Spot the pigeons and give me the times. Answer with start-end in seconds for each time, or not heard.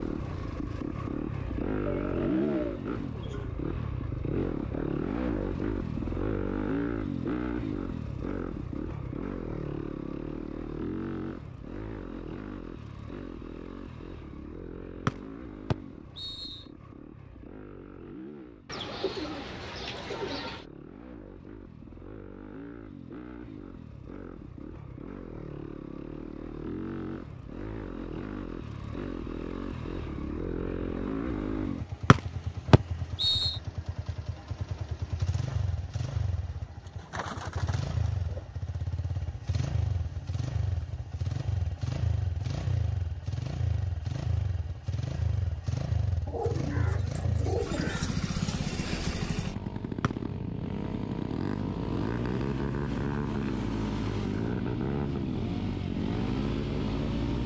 1.9-3.8, 18.6-20.6, 36.9-38.5, 46.2-48.1.